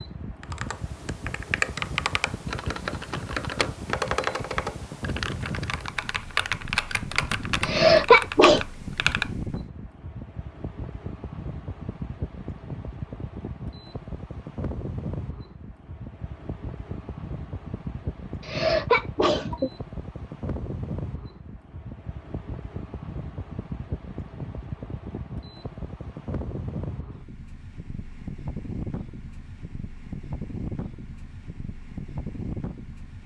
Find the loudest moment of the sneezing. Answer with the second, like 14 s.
8 s.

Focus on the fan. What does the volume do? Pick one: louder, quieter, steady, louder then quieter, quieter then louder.
steady.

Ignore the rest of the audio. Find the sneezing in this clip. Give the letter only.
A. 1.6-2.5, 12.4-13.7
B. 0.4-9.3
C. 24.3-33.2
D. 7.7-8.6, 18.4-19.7
D.